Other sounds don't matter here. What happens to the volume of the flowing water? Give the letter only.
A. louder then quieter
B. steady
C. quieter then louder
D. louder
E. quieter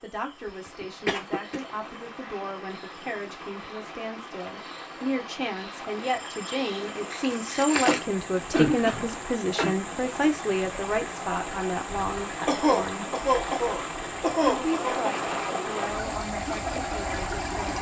D.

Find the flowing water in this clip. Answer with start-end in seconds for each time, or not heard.
0.0-17.7.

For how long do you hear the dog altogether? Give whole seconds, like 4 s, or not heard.
not heard.